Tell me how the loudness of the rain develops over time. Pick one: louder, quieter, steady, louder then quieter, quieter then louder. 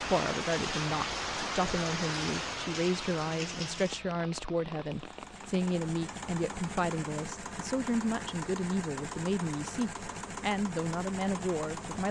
quieter.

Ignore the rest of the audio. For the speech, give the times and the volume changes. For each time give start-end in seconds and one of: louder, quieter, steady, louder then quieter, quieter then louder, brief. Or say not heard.
0.0-12.0 steady.